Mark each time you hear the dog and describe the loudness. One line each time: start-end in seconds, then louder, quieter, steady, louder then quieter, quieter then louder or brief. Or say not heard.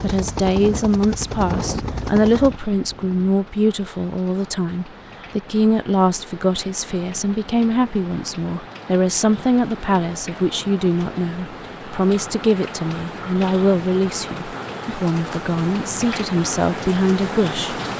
not heard.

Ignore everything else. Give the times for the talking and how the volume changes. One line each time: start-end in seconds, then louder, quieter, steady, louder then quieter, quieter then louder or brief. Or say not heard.
0.0-17.8 steady.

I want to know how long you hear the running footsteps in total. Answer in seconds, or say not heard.
not heard.